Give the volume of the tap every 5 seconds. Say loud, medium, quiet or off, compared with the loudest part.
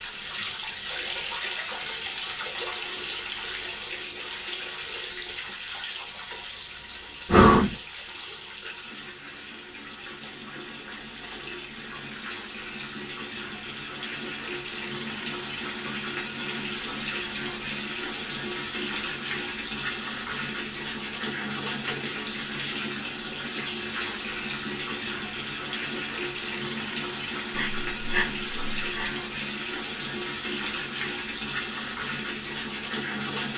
loud, medium, medium, loud, loud, loud, loud.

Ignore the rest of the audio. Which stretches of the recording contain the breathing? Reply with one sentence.
You can hear the breathing from 7.2 to 7.8 s and from 27.5 to 29.1 s.